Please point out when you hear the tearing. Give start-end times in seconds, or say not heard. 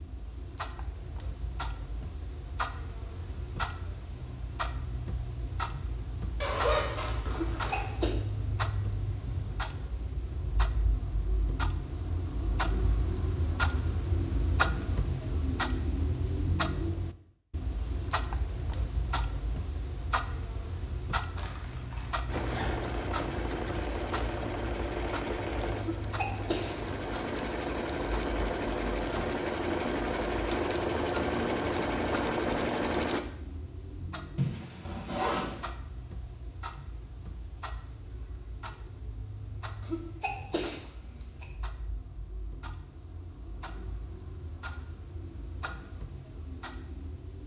not heard.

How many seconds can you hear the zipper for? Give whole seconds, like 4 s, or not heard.
4 s.